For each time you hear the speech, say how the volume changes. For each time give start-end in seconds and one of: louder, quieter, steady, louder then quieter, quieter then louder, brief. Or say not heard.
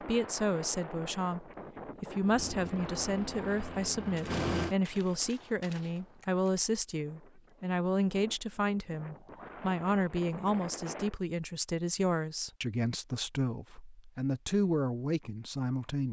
0.0-16.0 steady.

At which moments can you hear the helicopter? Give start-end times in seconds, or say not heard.
2.3-4.8.